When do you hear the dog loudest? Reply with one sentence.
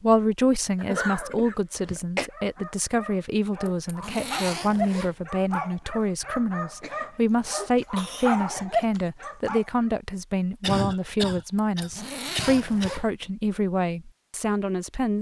The volume of the dog peaks at 9 seconds.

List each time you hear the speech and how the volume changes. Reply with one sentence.
The speech can be heard from 0.0 to 15.1 s, at a steady volume.